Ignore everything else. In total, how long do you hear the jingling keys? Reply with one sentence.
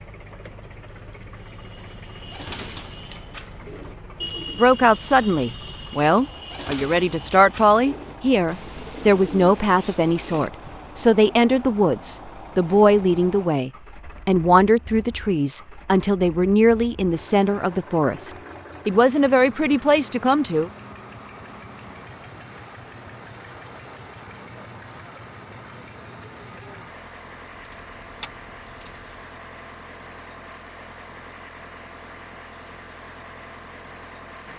The jingling keys can be heard for 3 seconds in total.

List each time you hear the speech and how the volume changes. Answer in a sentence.
The speech can be heard from 4.5 to 20.7 s, at a steady volume.